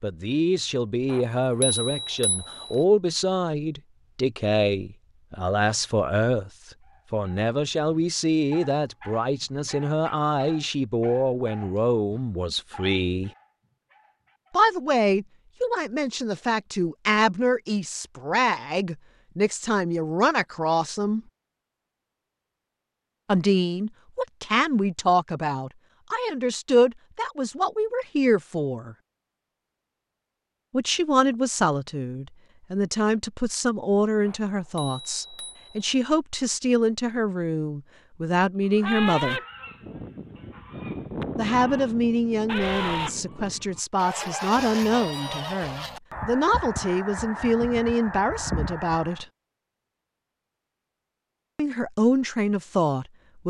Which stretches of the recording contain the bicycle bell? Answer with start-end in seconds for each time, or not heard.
1.1-2.9, 34.2-36.0.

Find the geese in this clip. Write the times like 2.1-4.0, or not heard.
38.7-49.2.